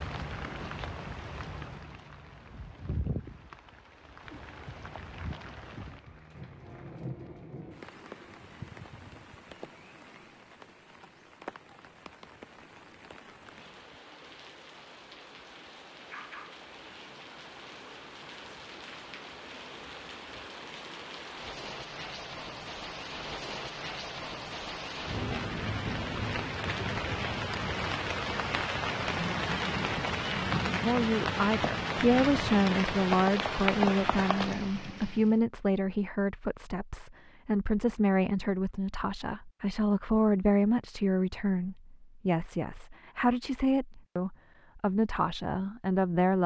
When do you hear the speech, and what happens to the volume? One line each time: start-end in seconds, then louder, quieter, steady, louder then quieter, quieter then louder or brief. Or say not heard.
30.8-46.4 steady.